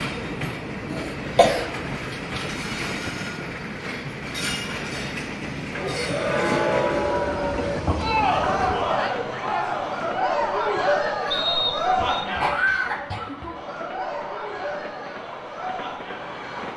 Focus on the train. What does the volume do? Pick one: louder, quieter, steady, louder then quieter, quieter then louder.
quieter.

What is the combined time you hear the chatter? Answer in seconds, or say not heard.
11 s.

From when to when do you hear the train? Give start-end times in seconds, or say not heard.
0.0-16.7.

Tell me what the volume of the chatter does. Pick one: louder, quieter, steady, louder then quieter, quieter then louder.
quieter.